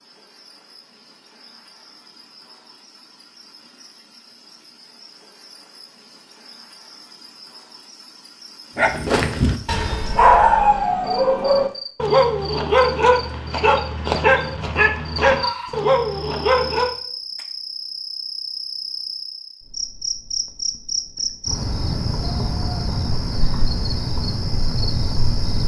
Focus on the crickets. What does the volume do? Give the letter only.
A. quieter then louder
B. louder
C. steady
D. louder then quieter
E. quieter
B.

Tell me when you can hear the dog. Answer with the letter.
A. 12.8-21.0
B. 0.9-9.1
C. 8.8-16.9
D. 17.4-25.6
C.